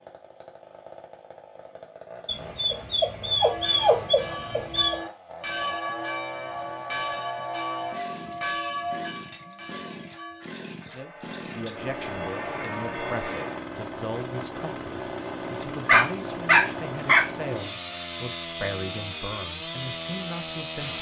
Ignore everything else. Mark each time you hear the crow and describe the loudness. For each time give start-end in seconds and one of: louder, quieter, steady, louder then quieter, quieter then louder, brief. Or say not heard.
not heard.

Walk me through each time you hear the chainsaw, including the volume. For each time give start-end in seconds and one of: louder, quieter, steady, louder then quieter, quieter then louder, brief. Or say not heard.
0.0-20.9 louder.